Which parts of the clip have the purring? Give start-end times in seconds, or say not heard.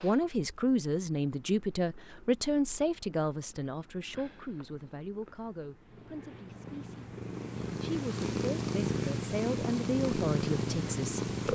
0.0-11.5.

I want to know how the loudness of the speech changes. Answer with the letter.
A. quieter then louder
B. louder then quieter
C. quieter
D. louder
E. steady
A.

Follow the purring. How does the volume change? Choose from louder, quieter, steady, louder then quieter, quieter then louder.
louder.